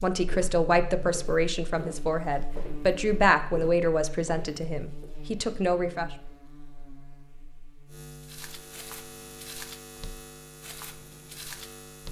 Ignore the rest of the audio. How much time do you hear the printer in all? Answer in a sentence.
You can't hear the printer here.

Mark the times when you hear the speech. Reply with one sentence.
The speech can be heard from 0.0 to 6.1 s.